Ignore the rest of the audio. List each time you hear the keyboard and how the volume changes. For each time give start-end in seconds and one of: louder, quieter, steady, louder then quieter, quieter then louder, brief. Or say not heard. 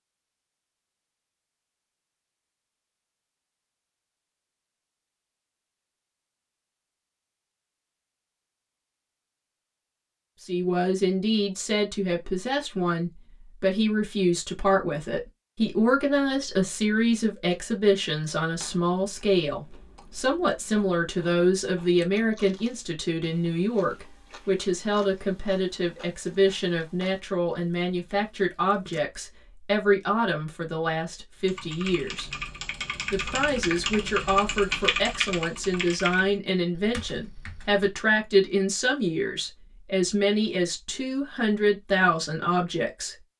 31.4-38.0 louder then quieter.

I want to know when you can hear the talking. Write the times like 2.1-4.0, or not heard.
10.4-32.3, 33.1-43.1.